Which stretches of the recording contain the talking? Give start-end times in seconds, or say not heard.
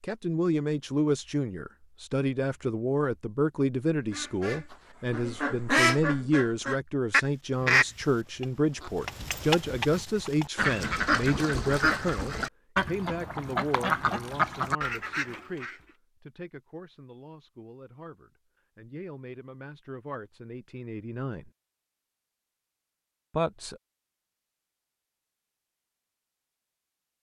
0.0-21.5, 23.3-23.8.